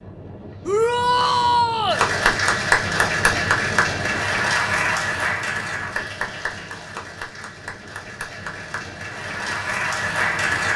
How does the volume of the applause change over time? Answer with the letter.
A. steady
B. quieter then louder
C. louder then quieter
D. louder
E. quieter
B.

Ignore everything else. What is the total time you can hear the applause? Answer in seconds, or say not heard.
9 s.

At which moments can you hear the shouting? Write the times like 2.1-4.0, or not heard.
0.7-2.0.